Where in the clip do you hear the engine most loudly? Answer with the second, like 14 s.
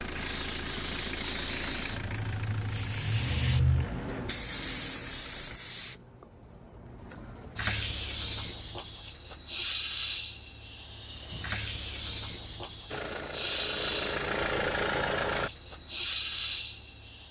15 s.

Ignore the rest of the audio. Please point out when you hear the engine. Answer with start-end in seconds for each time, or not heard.
0.0-5.6, 12.9-15.5.